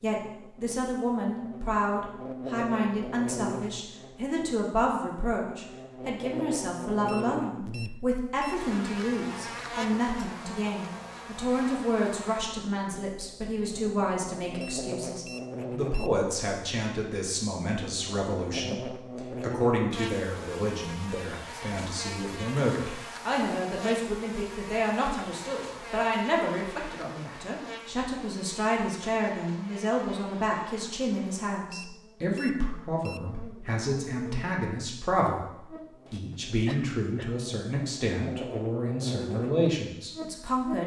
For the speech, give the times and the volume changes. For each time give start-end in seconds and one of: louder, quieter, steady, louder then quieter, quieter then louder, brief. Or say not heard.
0.0-40.8 steady.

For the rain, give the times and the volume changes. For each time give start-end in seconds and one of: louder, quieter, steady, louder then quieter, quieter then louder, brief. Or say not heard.
not heard.